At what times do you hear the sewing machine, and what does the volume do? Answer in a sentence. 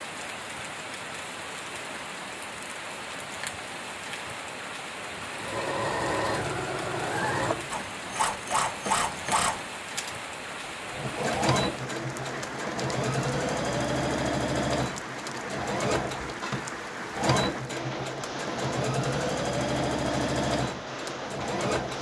The sewing machine can be heard from 5.3 to 21.9 s, at a steady volume.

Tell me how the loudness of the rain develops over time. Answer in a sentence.
The loudness of the rain stays about the same.